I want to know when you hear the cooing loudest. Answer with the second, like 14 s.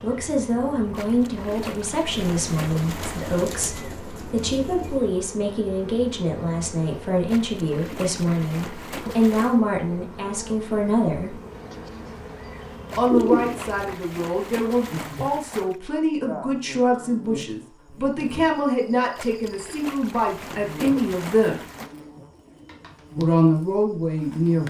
13 s.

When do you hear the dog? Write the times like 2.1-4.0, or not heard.
not heard.